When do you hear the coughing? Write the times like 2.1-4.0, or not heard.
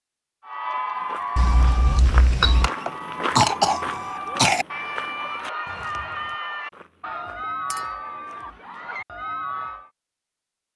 2.6-4.7.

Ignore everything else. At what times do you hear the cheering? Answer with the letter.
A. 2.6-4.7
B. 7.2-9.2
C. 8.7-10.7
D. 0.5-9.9
D.